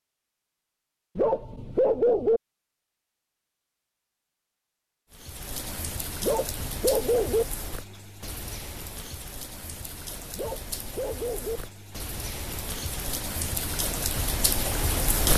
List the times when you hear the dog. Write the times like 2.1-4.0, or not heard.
1.1-2.4, 6.2-7.5, 10.3-11.6.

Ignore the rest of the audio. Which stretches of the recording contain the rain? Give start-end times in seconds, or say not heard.
5.1-15.3.